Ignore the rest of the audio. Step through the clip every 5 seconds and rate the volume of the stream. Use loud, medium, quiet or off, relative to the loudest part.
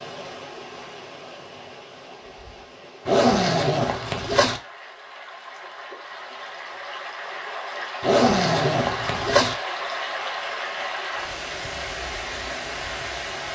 medium, loud, loud.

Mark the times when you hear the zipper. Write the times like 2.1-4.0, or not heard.
3.0-4.6, 8.0-9.6.